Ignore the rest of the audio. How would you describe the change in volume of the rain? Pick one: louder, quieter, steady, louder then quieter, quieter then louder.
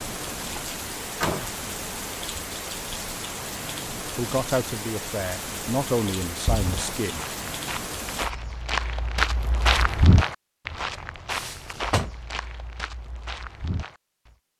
steady.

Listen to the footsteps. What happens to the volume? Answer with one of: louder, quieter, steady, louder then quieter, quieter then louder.
louder then quieter.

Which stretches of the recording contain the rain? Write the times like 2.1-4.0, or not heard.
0.0-8.3.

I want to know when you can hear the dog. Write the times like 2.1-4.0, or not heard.
not heard.